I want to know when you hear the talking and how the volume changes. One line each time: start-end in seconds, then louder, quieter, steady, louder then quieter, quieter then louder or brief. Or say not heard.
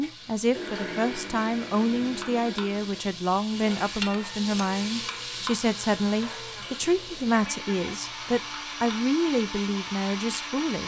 0.0-10.8 steady.